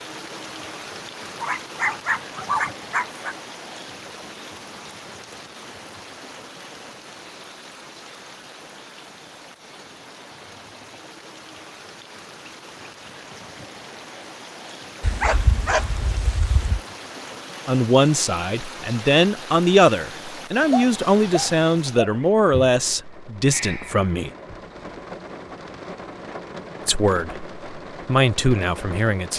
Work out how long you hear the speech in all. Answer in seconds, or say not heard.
9 s.